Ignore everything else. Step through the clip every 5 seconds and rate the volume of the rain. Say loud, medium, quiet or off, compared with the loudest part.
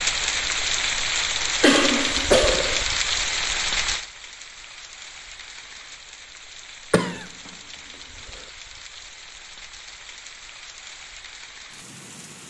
loud, quiet, quiet.